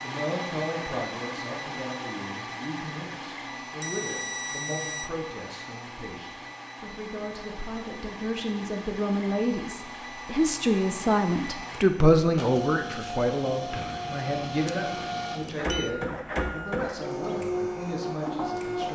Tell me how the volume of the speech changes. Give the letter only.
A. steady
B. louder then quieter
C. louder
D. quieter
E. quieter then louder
B.